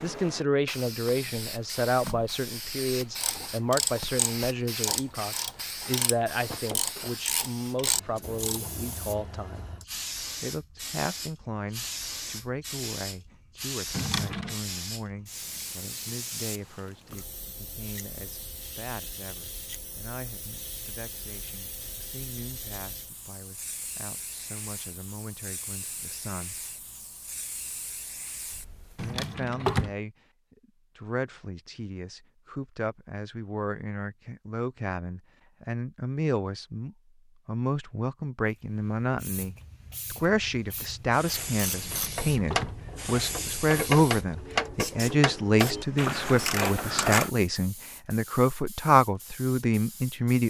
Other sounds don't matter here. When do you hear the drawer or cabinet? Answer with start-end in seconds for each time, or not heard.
13.9-14.6, 28.9-29.9, 41.8-42.8.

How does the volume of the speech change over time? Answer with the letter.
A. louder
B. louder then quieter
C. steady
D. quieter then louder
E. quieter
D.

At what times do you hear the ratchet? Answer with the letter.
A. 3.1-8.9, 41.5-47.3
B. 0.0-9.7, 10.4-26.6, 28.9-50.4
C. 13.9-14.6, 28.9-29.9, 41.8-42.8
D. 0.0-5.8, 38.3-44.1
A.